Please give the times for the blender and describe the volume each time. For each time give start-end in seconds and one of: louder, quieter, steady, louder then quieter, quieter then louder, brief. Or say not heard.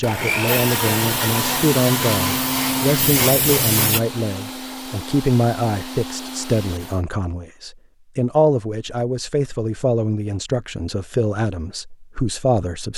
0.0-7.0 quieter.